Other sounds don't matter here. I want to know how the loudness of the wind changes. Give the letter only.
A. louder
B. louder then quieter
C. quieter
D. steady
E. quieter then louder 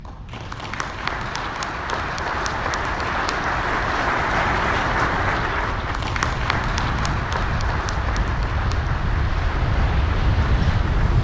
A.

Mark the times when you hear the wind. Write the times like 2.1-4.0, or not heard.
0.0-11.2.